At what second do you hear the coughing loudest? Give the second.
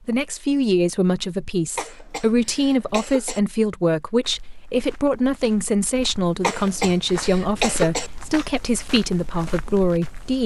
8 s.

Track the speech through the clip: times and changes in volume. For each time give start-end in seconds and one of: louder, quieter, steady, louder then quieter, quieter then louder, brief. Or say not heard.
0.1-10.4 steady.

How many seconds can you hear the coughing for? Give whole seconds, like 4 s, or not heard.
3 s.